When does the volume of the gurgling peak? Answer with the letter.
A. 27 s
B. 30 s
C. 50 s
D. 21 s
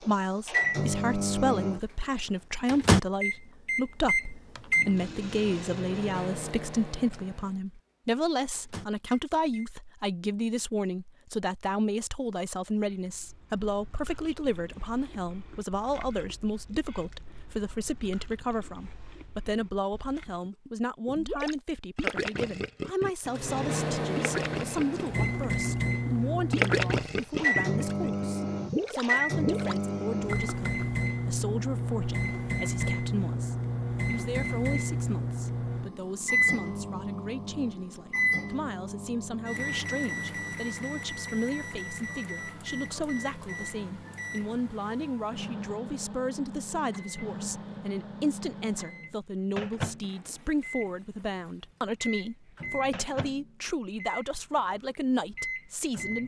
A.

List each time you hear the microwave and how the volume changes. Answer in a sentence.
You can hear the microwave from 0.0 to 9.7 s, getting quieter; and from 23.2 to 56.2 s, getting quieter.